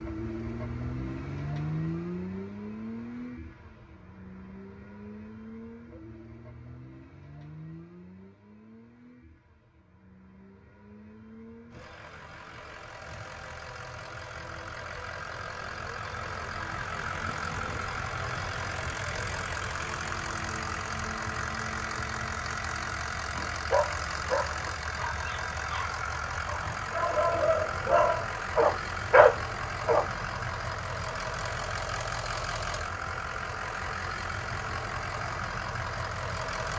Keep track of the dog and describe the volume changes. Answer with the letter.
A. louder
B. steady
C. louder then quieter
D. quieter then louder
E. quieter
D.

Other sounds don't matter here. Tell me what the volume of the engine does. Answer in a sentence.
The loudness of the engine goes down, then up.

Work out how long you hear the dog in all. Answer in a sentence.
The dog can be heard for 7 seconds in total.